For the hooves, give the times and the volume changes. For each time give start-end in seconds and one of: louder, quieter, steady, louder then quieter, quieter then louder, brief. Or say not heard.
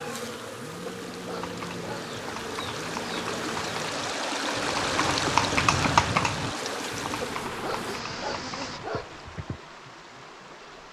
1.4-9.6 louder then quieter.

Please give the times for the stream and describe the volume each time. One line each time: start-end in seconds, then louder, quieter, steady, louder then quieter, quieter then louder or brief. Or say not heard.
0.1-10.8 louder then quieter.